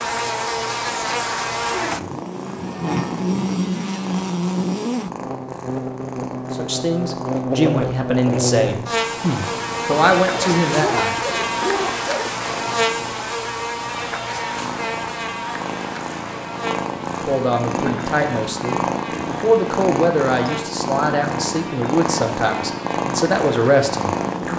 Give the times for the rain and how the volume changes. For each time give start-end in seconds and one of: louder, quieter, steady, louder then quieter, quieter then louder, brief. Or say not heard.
not heard.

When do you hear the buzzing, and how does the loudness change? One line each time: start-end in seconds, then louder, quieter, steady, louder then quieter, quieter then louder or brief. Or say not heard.
0.0-24.5 quieter.